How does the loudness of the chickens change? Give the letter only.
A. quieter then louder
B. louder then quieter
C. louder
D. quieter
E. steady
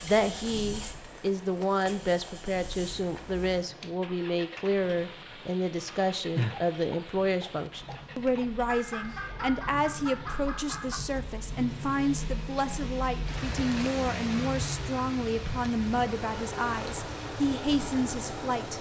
A.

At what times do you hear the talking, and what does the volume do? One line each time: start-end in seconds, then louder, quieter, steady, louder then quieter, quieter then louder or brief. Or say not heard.
0.0-18.7 steady.